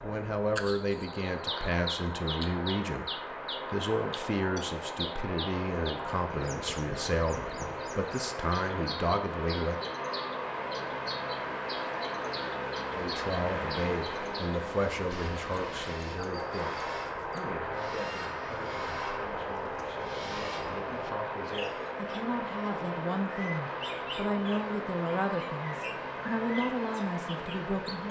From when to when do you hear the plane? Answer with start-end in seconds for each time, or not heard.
0.0-28.0.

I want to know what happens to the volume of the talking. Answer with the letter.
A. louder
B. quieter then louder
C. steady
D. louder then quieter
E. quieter
B.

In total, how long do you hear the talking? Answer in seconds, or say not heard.
25 s.